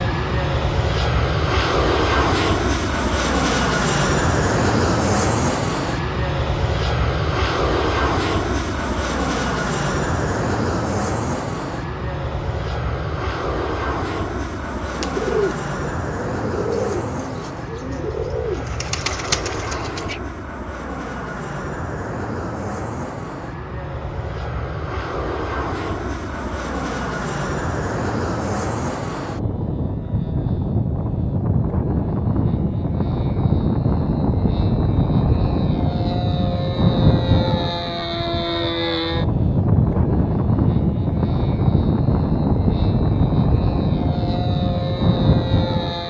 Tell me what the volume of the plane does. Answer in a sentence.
The loudness of the plane goes down, then up.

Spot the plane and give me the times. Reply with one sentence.
The plane can be heard from 0.0 to 46.0 s.